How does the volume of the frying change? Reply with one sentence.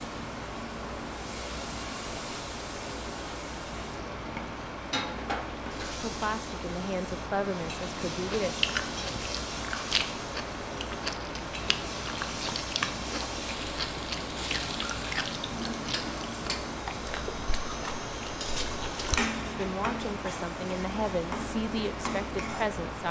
The loudness of the frying goes up.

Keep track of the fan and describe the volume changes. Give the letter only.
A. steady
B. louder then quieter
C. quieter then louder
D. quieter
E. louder
A.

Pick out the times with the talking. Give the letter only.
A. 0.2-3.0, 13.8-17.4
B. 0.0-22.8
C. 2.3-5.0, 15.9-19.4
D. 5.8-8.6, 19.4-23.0
D.